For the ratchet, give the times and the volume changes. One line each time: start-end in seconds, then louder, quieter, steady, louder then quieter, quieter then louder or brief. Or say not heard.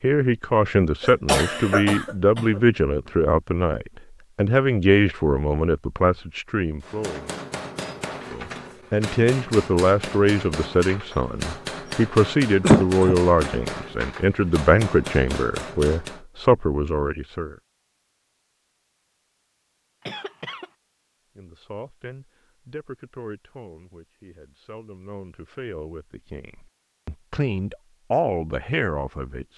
not heard.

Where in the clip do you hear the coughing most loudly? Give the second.
13 s.